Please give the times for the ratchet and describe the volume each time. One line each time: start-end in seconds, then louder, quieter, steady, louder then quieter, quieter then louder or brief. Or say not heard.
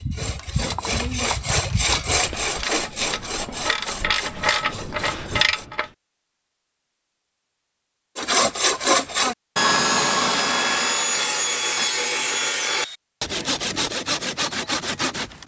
0.3-5.9 louder.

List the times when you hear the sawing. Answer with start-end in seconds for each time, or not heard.
0.0-5.7, 8.2-15.4.